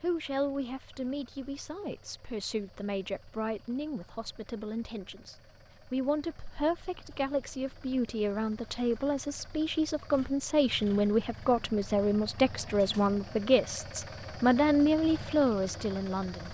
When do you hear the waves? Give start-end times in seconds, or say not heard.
not heard.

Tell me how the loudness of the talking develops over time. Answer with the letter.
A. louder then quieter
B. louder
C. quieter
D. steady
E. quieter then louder
B.